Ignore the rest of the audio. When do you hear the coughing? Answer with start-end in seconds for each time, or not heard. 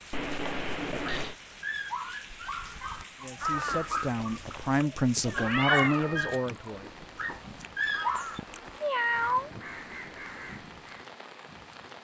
not heard.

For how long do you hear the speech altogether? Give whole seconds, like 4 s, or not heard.
4 s.